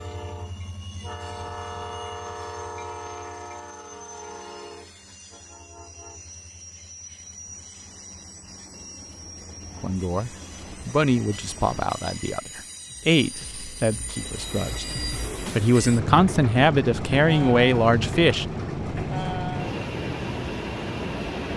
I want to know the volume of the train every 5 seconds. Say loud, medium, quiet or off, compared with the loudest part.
medium, quiet, medium, loud, loud.